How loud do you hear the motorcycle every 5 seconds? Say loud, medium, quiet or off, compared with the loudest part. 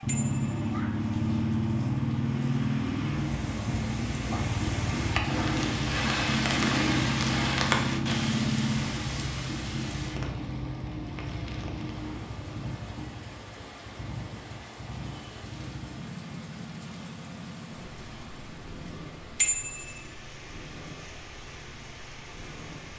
loud, loud, medium, quiet, quiet.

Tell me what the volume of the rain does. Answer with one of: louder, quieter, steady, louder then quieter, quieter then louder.
louder then quieter.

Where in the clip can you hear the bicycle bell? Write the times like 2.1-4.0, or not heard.
0.1-0.6, 19.4-20.0.